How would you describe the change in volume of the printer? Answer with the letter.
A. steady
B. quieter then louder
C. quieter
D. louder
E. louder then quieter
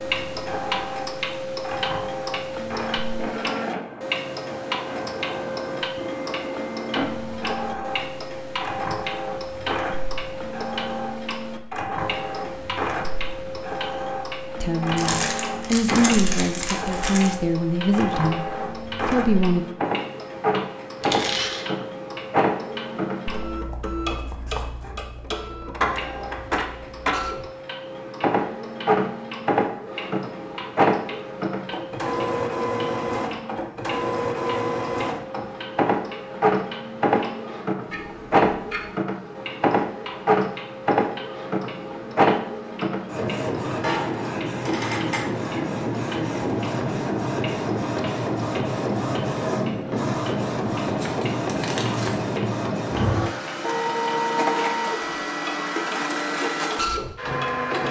D.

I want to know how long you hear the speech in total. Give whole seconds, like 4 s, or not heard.
5 s.